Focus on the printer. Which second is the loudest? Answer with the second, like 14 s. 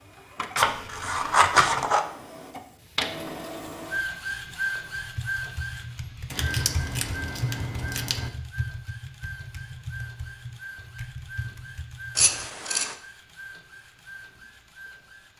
4 s.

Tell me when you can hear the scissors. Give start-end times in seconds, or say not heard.
0.6-2.0, 6.3-8.3, 12.2-12.9.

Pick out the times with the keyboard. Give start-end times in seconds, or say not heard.
5.0-12.5.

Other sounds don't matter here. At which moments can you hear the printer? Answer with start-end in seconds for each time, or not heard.
0.0-15.3.